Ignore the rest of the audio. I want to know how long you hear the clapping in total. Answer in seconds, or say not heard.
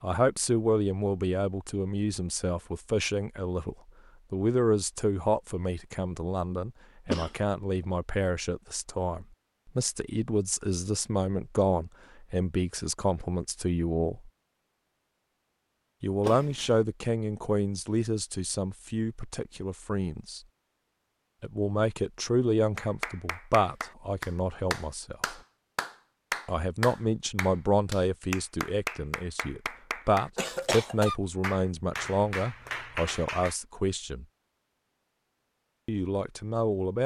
11 s.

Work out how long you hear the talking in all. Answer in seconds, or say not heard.
32 s.